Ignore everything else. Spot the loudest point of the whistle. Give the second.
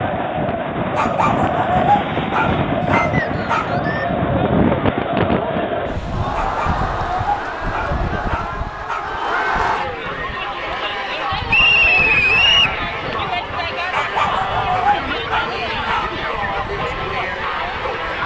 12 s.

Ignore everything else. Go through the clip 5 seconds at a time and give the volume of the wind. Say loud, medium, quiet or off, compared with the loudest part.
loud, medium, quiet, quiet.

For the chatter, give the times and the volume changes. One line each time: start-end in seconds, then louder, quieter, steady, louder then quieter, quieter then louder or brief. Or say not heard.
0.0-18.2 steady.